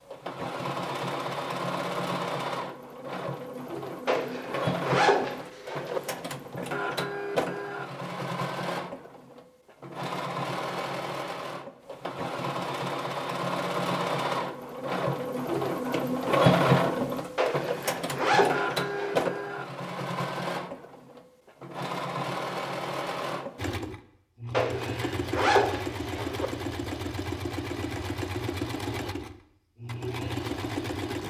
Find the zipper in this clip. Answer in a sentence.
The zipper can be heard from 4.0 to 6.0 s, from 17.4 to 19.3 s and from 24.5 to 26.5 s.